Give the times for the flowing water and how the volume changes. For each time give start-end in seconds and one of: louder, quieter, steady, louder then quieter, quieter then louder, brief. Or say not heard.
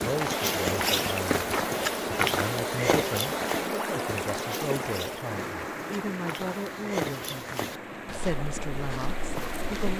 0.0-9.9 quieter.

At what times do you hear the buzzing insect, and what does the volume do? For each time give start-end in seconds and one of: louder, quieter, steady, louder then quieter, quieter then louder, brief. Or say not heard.
not heard.